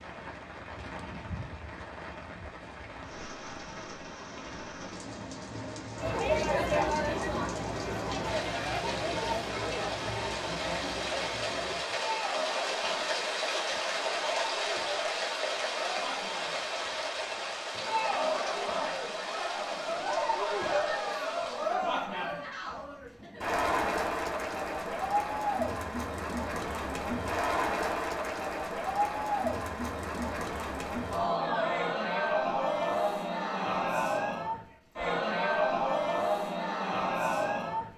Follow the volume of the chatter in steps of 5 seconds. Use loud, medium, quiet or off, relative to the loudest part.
off, loud, medium, medium, loud, loud, loud, loud.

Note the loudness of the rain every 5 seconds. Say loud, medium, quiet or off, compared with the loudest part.
medium, medium, loud, loud, medium, off, off, off.